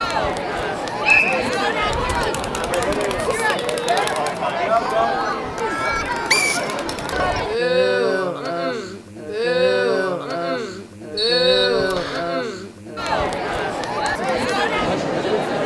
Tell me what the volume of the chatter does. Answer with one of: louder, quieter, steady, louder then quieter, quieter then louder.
steady.